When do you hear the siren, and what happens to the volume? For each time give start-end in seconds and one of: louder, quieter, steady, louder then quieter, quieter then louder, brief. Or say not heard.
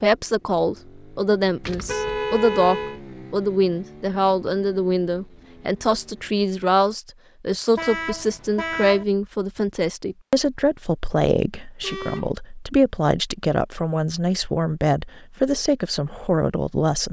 not heard.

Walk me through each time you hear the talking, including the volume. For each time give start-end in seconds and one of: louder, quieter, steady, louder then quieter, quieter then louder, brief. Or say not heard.
0.0-17.0 steady.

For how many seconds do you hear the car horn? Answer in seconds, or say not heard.
3 s.